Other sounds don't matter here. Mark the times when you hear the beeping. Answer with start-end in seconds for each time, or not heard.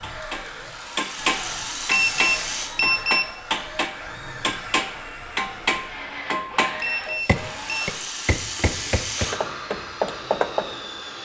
1.9-3.3, 6.8-7.9.